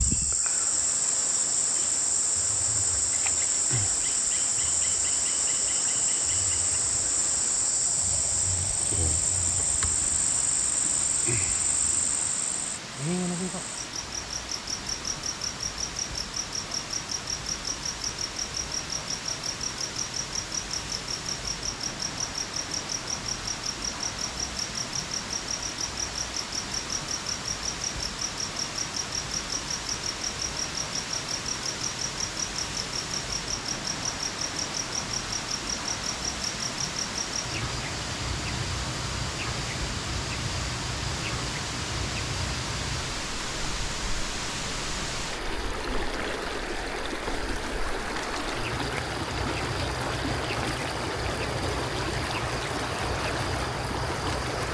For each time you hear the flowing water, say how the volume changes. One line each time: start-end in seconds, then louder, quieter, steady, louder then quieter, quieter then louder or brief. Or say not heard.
0.0-54.6 louder.